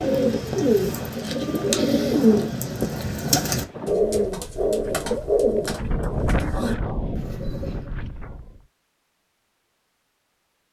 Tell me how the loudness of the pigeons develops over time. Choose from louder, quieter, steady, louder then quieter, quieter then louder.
quieter.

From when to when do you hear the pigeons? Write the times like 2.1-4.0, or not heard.
0.0-7.9.